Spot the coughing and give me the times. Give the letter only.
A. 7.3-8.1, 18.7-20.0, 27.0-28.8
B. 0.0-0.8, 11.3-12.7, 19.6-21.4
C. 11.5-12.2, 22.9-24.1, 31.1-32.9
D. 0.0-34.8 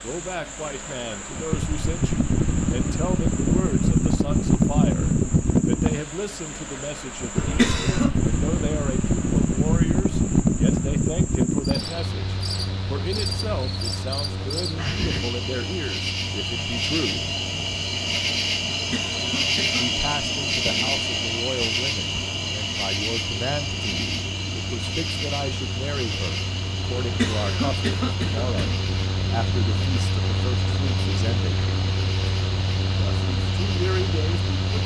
A.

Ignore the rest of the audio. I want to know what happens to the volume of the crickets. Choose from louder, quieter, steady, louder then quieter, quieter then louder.
louder then quieter.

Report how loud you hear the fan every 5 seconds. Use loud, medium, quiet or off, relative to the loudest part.
loud, loud, loud, quiet, quiet, medium, medium.